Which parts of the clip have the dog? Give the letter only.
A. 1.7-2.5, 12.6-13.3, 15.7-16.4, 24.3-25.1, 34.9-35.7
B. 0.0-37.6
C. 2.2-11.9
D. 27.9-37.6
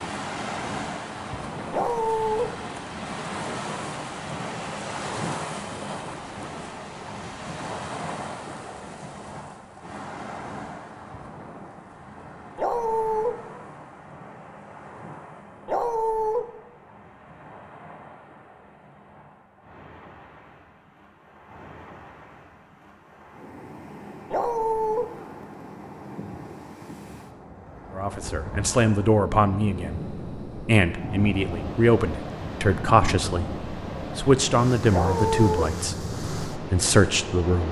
A.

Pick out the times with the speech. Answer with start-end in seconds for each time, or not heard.
27.9-37.6.